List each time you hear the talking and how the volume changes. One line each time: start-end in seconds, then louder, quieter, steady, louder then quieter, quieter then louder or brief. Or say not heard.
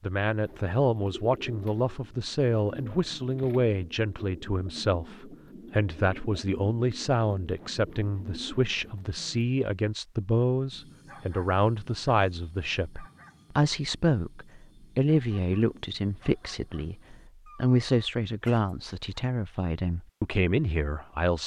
0.0-21.4 steady.